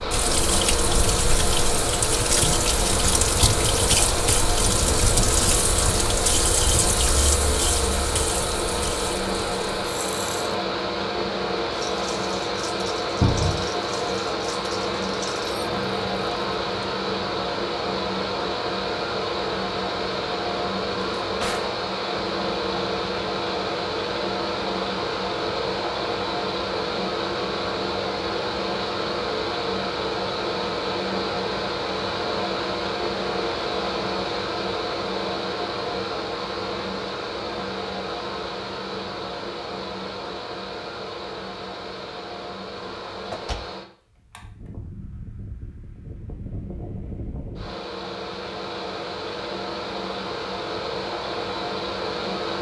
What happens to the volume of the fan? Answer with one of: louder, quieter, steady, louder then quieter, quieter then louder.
quieter.